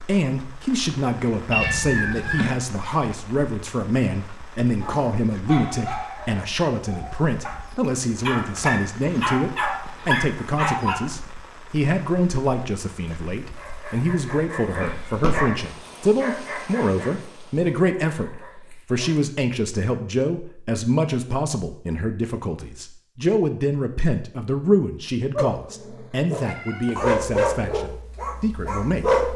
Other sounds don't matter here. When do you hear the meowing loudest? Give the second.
2 s.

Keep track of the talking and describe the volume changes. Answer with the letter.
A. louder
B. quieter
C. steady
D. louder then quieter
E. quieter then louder
C.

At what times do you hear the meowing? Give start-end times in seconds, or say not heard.
1.5-2.5, 14.8-15.4, 26.4-27.1.